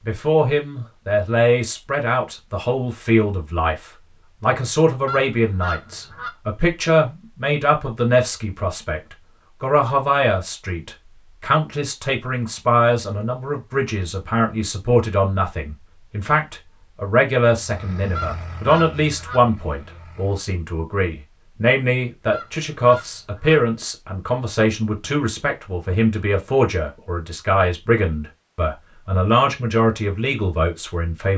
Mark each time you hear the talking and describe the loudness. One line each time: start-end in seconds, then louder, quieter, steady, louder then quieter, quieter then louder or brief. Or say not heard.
0.1-31.3 steady.